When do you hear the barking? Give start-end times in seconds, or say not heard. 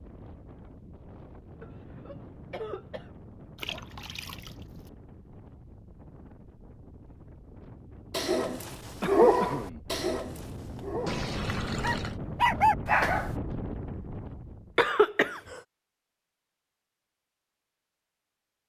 8.1-13.3.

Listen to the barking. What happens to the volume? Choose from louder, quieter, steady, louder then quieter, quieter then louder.
quieter then louder.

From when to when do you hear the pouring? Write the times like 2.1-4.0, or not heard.
3.5-4.9, 11.1-12.2.